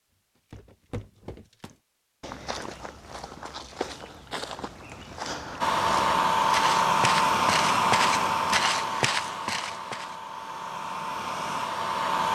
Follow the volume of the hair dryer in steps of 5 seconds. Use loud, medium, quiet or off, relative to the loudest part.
off, loud, medium.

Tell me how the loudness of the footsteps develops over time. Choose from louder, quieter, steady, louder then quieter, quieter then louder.
louder.